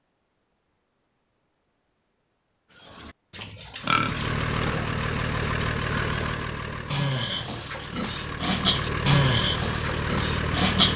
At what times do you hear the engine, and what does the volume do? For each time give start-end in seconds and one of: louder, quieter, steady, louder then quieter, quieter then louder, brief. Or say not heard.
3.8-10.9 quieter then louder.